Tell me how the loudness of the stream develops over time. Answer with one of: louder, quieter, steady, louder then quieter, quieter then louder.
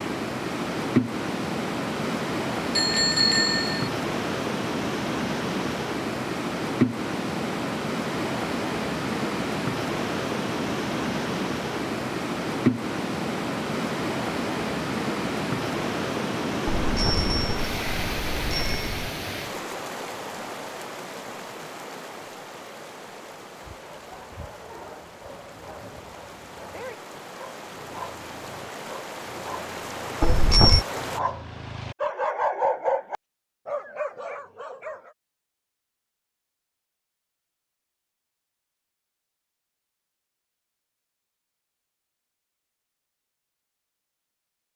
quieter.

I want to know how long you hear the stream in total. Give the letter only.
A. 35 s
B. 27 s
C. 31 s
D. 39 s
C.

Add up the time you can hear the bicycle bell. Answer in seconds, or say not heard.
4 s.